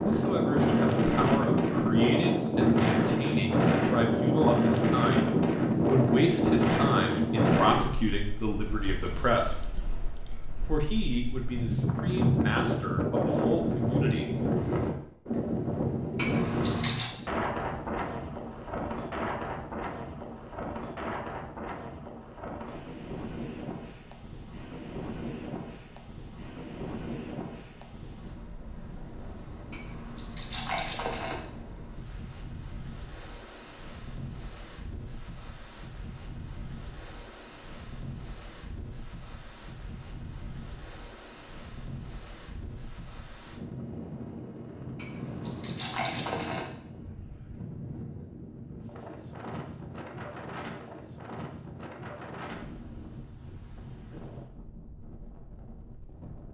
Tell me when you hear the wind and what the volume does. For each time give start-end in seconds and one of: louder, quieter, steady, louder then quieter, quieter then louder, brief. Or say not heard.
0.0-56.4 quieter.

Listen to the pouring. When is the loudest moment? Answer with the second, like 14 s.
17 s.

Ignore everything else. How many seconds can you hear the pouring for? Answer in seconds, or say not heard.
4 s.